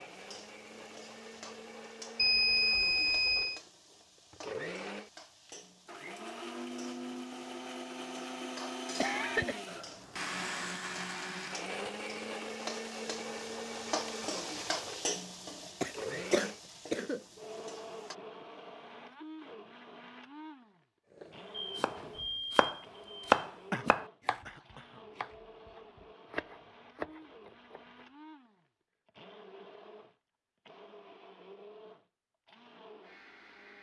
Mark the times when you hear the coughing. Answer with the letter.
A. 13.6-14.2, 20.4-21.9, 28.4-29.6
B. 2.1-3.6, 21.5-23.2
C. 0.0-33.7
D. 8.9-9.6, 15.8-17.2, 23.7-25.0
D.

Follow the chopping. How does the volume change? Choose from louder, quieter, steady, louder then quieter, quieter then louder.
louder then quieter.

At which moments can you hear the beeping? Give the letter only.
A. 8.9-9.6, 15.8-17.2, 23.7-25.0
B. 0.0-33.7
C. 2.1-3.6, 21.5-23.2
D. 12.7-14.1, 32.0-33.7
C.